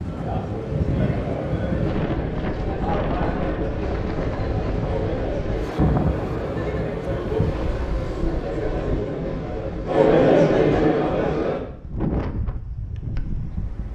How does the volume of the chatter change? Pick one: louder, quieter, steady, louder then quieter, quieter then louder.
louder.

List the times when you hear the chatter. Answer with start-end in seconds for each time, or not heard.
0.0-11.7.